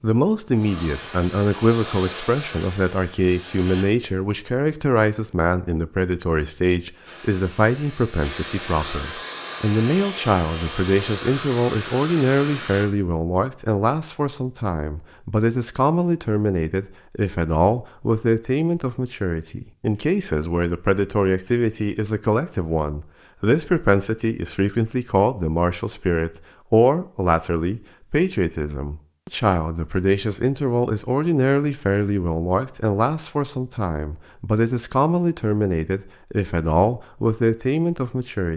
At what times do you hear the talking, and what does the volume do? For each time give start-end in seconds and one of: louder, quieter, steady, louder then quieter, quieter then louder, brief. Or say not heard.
0.0-38.5 steady.